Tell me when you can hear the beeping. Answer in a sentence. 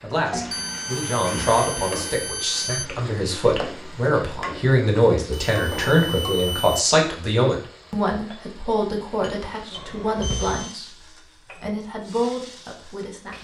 You can hear the beeping from 0.5 to 2.9 s, from 5.3 to 6.8 s and from 9.7 to 10.8 s.